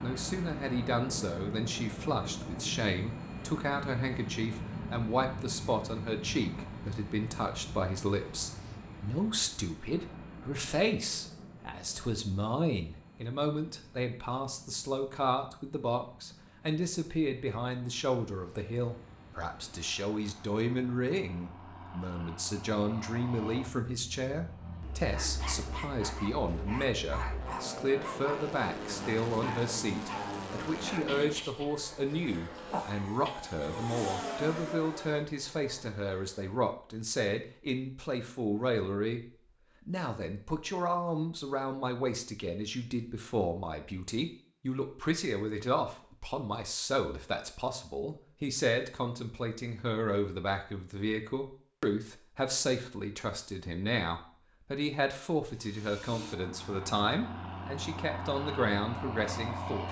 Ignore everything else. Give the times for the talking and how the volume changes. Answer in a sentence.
You can hear the talking from 0.0 to 39.2 s, at a steady volume; and from 39.9 to 59.8 s, at a steady volume.